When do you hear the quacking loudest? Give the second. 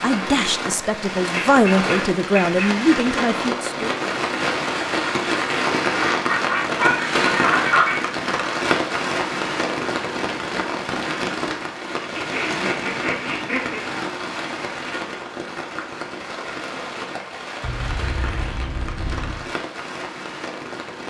8 s.